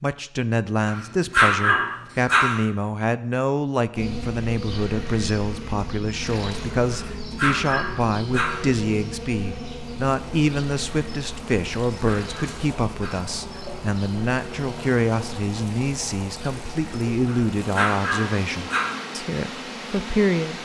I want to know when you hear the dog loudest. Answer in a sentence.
The loudest moment of the dog is at 2 seconds.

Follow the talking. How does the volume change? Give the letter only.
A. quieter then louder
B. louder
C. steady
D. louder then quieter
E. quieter
C.